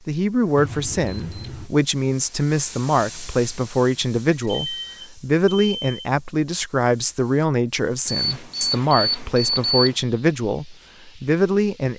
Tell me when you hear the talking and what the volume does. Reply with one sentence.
You can hear the talking from 0.1 to 11.9 s, at a steady volume.